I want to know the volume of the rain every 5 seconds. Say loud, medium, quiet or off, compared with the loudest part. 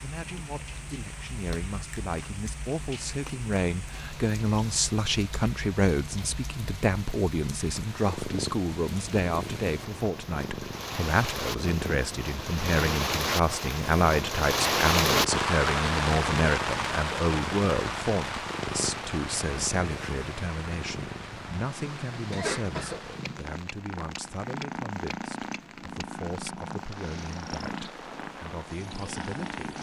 quiet, quiet, loud, loud, quiet, quiet.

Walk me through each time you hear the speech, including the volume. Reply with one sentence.
You can hear the speech from 0.0 to 29.7 s, getting quieter.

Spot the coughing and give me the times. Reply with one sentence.
The coughing can be heard from 22.3 to 23.1 s.